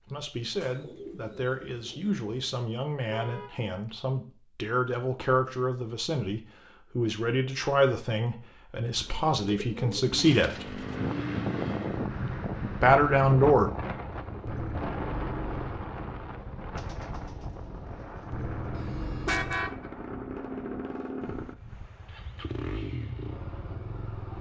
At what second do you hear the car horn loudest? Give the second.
19 s.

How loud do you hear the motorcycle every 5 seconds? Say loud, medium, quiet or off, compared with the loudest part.
off, off, loud, loud, loud.